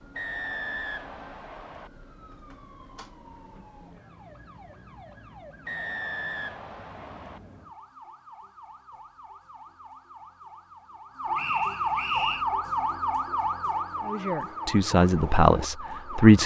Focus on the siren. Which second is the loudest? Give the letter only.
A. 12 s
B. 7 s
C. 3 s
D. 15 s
A.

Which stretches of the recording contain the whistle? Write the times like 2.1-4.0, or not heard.
0.1-1.9, 5.7-7.4, 11.3-12.4.